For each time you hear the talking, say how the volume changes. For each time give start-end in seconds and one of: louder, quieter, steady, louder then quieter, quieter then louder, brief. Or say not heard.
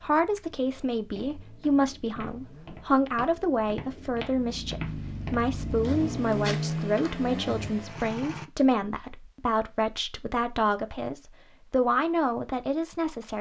0.0-13.3 steady.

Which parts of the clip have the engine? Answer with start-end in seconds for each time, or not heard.
0.0-8.4.